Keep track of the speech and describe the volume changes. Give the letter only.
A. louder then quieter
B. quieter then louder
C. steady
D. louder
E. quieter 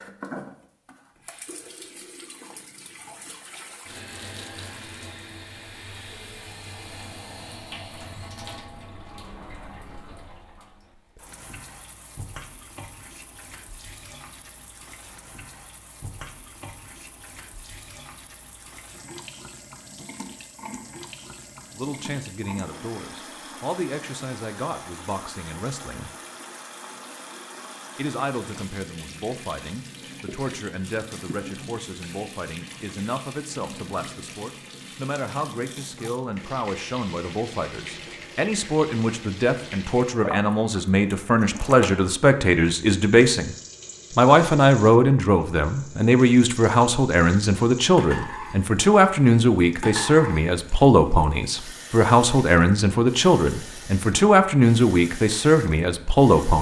D.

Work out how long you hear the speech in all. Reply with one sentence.
The speech can be heard for 32 seconds in total.